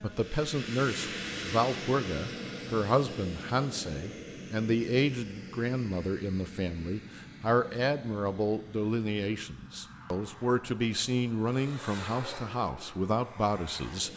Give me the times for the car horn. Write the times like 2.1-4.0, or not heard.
not heard.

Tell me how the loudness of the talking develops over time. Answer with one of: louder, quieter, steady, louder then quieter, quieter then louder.
steady.